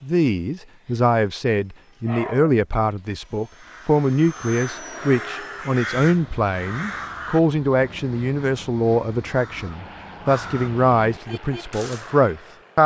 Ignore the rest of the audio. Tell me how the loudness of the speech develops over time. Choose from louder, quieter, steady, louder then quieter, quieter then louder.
steady.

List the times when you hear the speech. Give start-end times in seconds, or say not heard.
0.0-12.8.